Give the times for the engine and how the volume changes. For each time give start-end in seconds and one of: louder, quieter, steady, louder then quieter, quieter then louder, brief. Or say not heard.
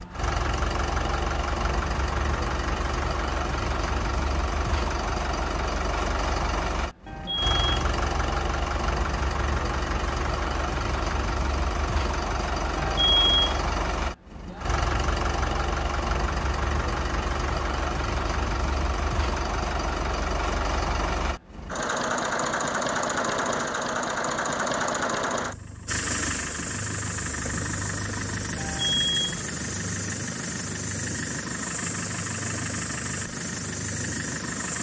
0.0-34.7 steady.